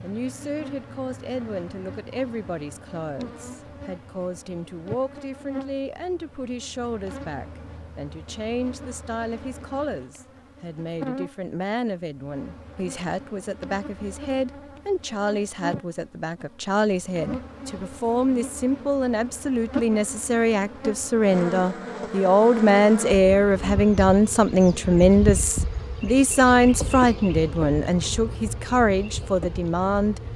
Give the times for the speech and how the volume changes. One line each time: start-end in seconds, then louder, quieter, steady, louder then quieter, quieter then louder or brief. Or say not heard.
0.0-30.2 louder.